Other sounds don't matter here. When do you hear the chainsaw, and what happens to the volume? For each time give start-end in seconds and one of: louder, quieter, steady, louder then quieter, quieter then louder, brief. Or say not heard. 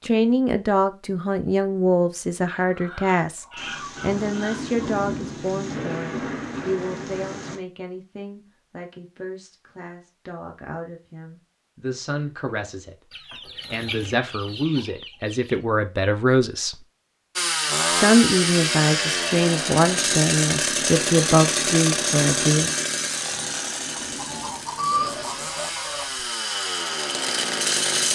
17.4-28.1 quieter then louder.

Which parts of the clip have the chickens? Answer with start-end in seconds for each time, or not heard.
2.5-4.8, 13.1-15.6, 24.1-26.2.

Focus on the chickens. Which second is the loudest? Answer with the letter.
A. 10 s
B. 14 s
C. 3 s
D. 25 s
D.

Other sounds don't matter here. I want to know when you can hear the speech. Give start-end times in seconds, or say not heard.
0.0-12.9, 13.7-16.8, 17.9-22.8.